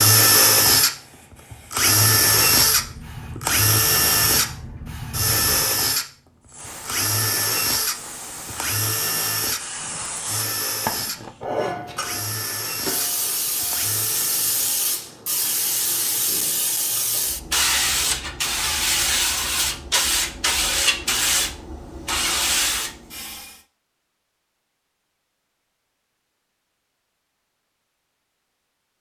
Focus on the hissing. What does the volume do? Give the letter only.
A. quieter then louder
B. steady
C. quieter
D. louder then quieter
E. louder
E.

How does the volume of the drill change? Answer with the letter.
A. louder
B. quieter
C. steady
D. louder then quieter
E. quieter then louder
B.